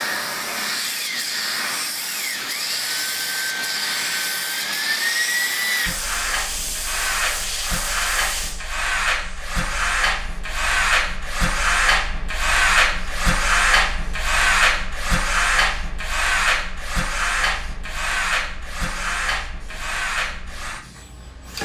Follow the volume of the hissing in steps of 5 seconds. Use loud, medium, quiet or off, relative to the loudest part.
loud, loud, quiet, quiet, quiet.